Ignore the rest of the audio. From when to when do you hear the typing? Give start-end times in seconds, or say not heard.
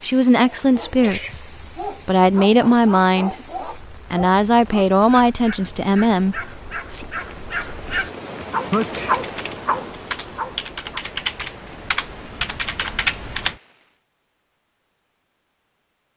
8.7-13.6.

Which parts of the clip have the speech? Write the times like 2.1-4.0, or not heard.
0.0-7.0.